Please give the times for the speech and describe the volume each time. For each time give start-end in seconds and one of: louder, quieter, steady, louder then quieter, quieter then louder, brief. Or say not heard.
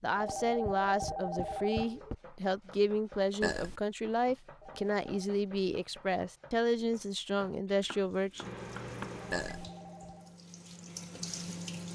0.0-8.5 steady.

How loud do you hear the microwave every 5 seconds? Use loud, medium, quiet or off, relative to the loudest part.
off, loud, loud.